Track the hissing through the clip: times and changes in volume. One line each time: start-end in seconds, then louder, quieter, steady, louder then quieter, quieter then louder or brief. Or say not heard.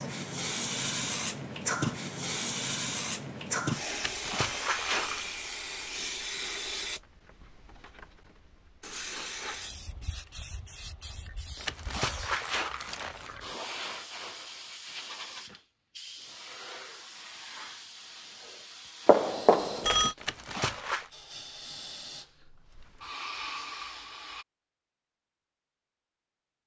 0.0-24.4 quieter.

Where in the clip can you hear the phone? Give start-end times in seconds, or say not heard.
19.1-20.1.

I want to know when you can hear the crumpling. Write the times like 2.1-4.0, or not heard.
4.0-5.3, 11.6-13.3, 20.1-21.1.